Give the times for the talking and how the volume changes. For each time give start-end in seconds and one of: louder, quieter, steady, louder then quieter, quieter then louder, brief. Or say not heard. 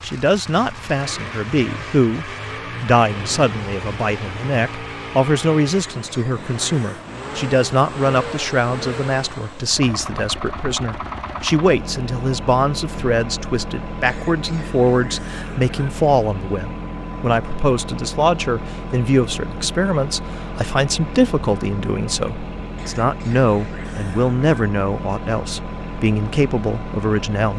0.0-27.5 steady.